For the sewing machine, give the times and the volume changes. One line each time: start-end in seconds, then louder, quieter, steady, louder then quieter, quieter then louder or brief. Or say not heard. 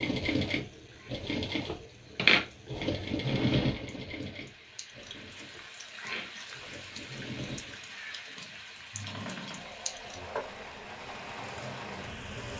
0.0-12.5 quieter.